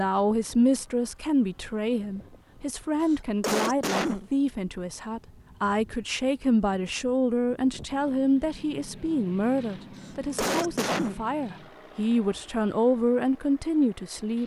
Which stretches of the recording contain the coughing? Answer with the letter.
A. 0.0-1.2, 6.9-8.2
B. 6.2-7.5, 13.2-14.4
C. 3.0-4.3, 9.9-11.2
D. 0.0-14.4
C.